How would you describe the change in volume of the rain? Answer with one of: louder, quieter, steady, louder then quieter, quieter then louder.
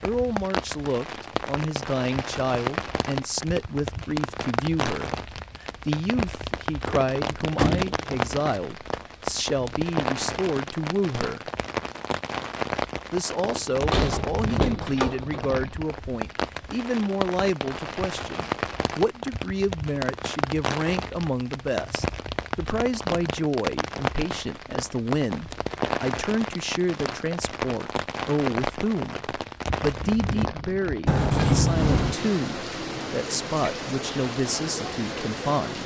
steady.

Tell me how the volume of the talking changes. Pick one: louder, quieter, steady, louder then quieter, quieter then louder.
steady.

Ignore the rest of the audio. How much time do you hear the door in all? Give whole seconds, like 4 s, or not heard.
4 s.